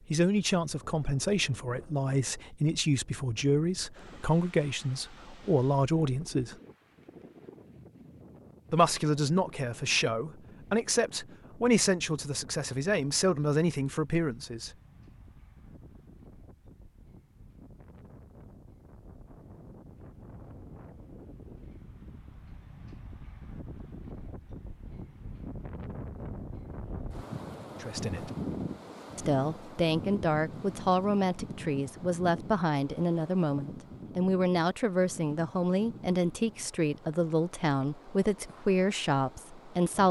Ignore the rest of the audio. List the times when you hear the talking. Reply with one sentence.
You can hear the talking from 0.1 to 6.5 s, from 8.7 to 14.7 s, from 27.8 to 28.3 s and from 29.1 to 40.0 s.